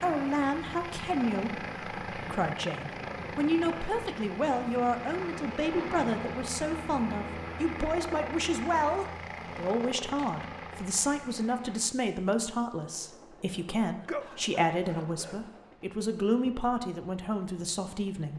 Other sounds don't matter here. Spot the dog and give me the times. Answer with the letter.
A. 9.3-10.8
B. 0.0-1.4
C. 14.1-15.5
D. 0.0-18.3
C.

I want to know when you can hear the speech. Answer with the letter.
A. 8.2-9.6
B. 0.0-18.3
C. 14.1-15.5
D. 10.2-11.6
B.